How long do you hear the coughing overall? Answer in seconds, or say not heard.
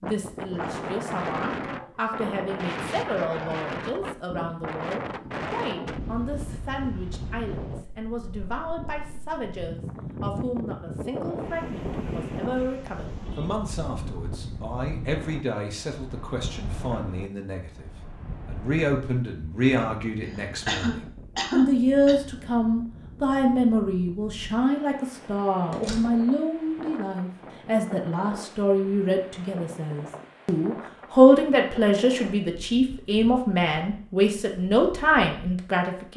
2 s.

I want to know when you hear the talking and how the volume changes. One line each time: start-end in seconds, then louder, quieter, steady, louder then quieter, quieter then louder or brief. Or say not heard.
0.0-36.1 louder.